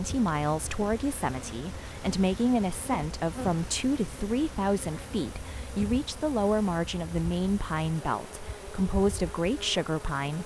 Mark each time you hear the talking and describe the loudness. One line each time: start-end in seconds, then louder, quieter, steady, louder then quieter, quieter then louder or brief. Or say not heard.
0.0-10.4 steady.